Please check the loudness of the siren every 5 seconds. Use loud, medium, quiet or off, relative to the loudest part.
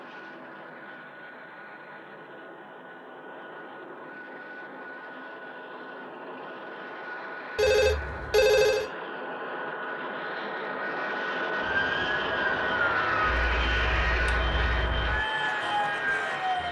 off, off, loud, loud.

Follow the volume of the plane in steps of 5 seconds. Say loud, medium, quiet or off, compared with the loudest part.
quiet, medium, loud, loud.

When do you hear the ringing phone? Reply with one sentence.
You can hear the ringing phone from 7.5 to 8.9 s.